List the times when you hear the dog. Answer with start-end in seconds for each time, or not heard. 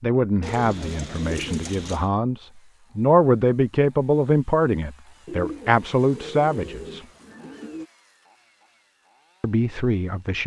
not heard.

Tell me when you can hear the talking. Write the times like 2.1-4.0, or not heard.
0.0-7.0, 9.4-10.4.